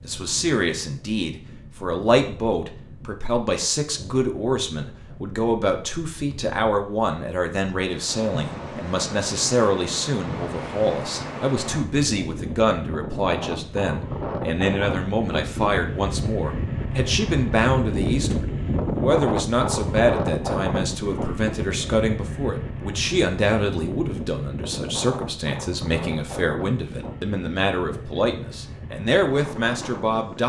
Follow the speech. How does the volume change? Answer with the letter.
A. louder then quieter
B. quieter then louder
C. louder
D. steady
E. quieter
D.